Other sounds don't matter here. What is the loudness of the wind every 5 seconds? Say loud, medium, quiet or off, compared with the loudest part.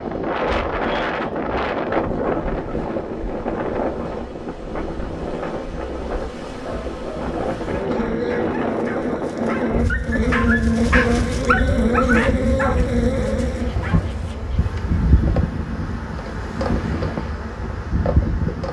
loud, loud, medium, loud.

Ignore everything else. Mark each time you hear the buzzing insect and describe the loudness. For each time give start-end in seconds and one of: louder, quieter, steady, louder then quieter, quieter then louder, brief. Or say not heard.
0.0-18.6 louder then quieter.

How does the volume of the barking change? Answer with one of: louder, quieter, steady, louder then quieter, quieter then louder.
louder then quieter.